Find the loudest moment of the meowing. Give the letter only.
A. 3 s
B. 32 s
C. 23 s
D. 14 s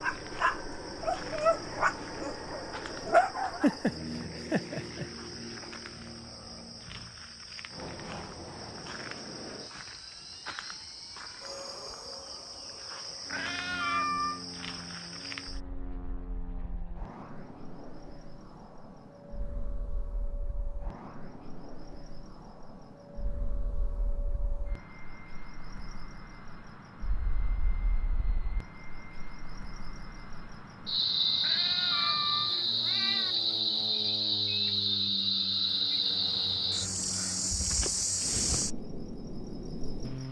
D.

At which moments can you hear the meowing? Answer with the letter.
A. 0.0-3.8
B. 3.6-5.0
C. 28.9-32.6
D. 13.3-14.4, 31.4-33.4
D.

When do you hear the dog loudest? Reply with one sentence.
The loudest moment of the dog is at 3 seconds.